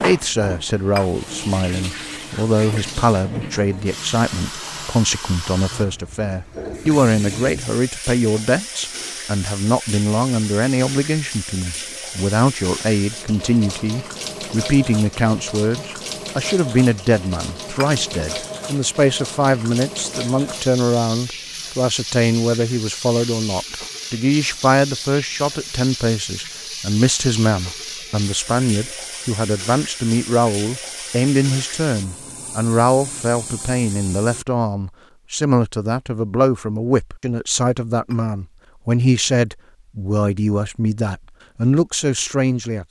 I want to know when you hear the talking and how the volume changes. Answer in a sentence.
The talking can be heard from 0.0 to 42.8 s, at a steady volume.